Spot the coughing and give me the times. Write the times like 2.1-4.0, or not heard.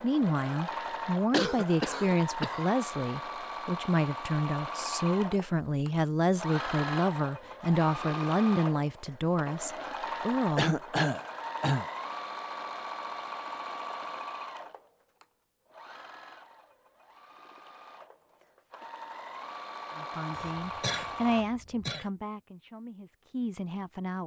1.3-2.7, 10.6-11.8, 20.4-22.1.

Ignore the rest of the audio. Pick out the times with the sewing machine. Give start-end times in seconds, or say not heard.
0.0-21.4.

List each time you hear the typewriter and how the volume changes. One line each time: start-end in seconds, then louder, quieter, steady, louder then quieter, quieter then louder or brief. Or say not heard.
not heard.